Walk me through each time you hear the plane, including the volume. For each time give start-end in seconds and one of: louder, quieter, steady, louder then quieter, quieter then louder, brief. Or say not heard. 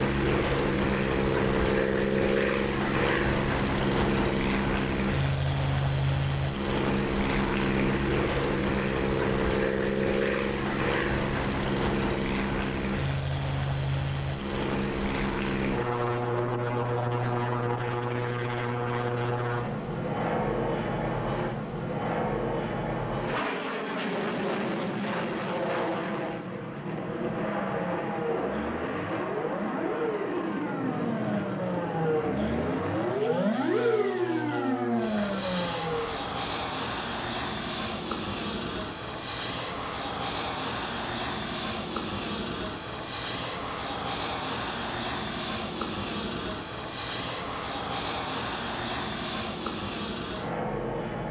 0.0-51.2 quieter.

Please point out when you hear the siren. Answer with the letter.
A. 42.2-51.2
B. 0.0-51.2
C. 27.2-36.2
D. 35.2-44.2
C.